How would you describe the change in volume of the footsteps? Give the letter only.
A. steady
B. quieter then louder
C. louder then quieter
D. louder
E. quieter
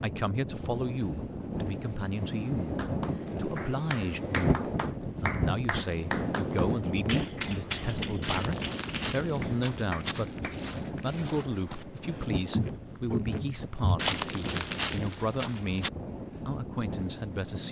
D.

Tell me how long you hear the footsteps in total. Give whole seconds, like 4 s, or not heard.
8 s.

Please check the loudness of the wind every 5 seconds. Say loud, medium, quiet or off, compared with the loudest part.
loud, loud, medium, medium.